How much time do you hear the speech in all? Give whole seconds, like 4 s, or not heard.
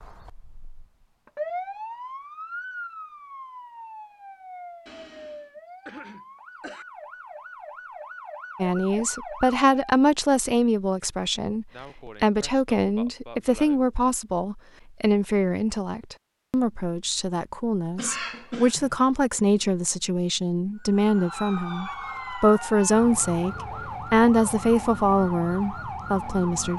18 s.